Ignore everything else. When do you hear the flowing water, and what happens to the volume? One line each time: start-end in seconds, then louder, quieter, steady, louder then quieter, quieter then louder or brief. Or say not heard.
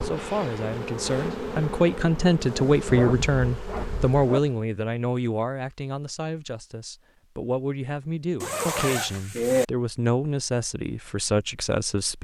not heard.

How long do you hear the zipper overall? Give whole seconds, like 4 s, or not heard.
3 s.